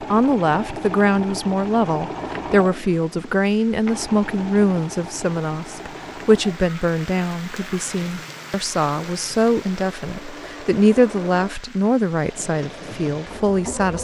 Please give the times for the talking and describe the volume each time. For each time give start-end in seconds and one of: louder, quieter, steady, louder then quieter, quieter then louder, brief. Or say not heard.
0.0-13.9 steady.